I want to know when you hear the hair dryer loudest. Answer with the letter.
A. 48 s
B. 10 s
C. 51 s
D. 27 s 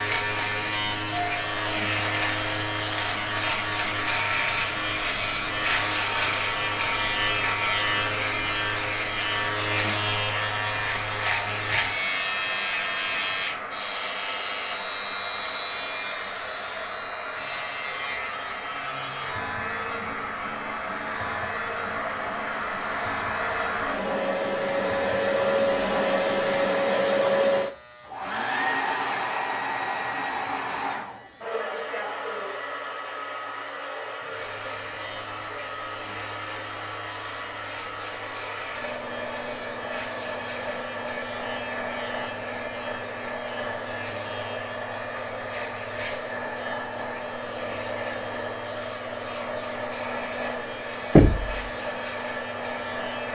D.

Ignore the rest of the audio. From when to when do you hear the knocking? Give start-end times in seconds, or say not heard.
51.1-51.6.